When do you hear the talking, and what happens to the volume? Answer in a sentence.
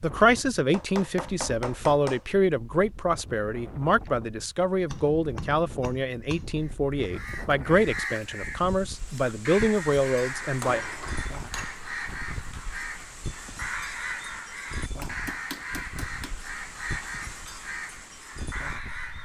The talking can be heard from 0.0 to 10.8 s, at a steady volume.